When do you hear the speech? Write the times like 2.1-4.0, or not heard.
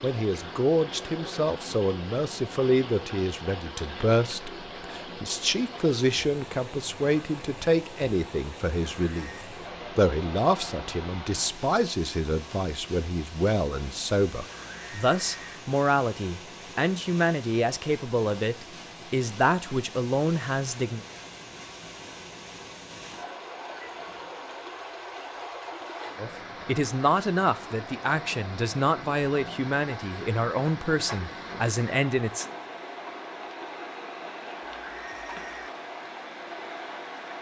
0.0-21.0, 26.1-32.5.